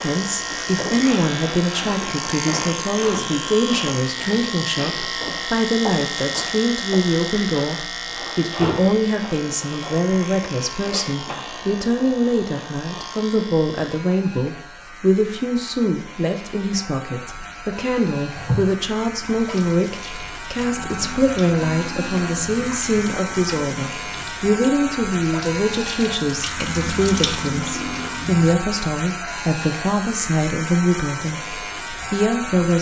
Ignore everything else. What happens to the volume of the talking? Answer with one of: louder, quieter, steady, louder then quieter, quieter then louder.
steady.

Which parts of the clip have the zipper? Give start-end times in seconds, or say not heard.
not heard.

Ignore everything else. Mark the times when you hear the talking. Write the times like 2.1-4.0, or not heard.
0.0-32.7.